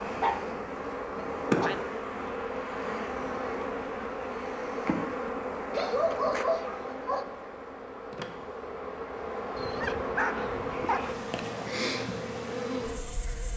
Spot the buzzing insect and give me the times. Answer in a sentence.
You can hear the buzzing insect from 0.0 to 13.5 s.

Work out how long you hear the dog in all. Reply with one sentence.
You can hear the dog for 5 seconds altogether.